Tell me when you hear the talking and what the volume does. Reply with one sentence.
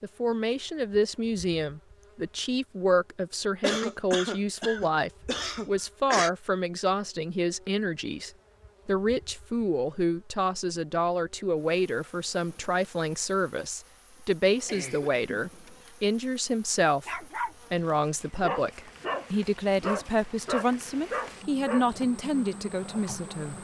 The talking can be heard from 0.0 to 23.6 s, at a steady volume.